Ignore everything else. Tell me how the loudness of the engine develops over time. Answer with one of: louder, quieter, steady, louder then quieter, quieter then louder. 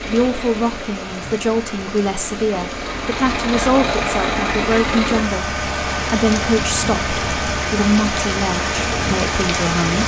louder.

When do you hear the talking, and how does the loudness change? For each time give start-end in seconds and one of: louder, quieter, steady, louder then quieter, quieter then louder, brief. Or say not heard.
0.0-10.0 steady.